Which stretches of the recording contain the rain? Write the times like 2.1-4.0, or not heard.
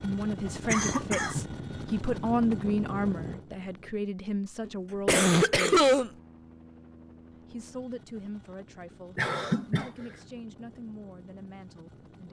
not heard.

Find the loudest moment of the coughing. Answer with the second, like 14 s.
6 s.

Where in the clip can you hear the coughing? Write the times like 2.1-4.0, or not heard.
0.7-1.4, 4.7-6.1, 9.2-9.9.